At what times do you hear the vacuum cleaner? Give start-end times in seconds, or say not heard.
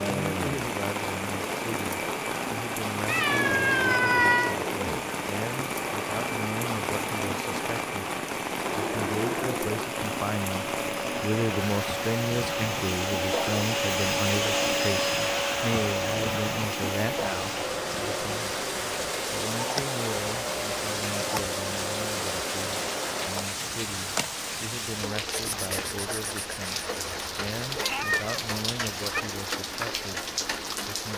0.0-23.6.